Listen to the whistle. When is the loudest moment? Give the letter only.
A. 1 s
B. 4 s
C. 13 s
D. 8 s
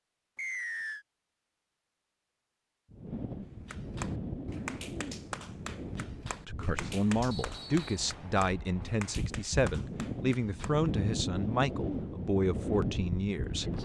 A.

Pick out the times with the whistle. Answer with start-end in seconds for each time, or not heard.
0.3-1.1, 7.3-8.1.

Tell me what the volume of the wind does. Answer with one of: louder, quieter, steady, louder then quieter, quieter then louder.
quieter then louder.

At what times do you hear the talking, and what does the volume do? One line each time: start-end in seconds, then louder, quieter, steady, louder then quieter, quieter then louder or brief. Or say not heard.
6.5-13.8 steady.